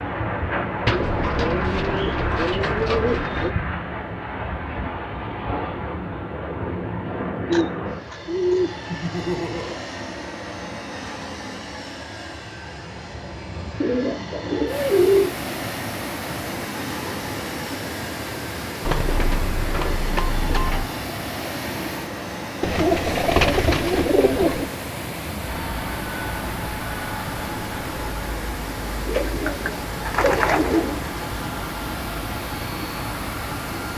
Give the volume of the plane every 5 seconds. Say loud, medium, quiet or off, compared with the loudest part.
loud, loud, medium, medium, medium, medium, medium.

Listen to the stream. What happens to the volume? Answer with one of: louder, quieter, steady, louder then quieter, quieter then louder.
steady.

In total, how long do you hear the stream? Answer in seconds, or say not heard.
19 s.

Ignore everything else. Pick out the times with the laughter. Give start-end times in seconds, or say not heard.
8.8-9.8.